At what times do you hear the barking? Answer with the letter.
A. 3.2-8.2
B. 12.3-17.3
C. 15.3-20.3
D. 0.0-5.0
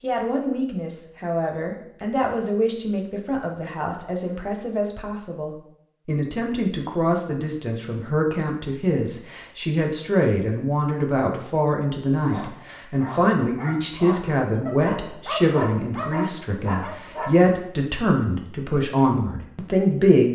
B.